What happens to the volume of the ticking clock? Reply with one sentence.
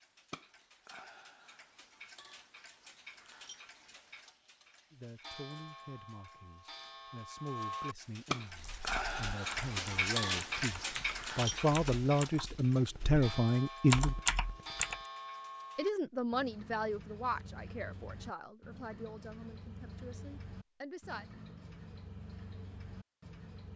The loudness of the ticking clock goes up, then down.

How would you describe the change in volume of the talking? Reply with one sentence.
The loudness of the talking goes up, then down.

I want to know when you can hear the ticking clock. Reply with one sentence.
You can hear the ticking clock from 0.0 to 23.7 s.